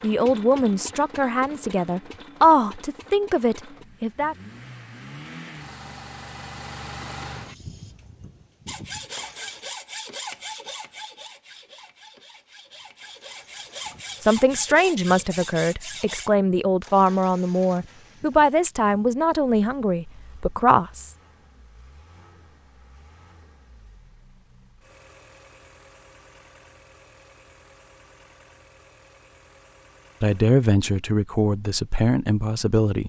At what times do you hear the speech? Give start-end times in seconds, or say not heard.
0.0-4.3, 14.2-21.1, 30.2-33.0.